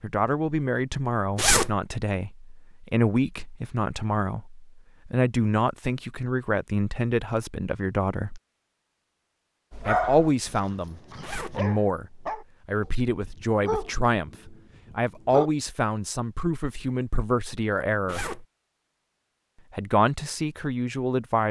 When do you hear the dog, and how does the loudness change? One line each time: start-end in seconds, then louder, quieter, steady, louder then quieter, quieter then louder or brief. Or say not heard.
9.7-15.5 louder then quieter.